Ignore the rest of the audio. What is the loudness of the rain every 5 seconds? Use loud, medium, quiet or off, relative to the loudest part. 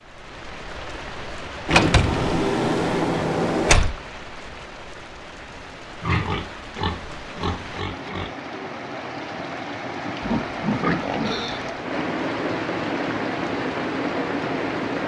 medium, medium, loud.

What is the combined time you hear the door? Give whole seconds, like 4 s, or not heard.
2 s.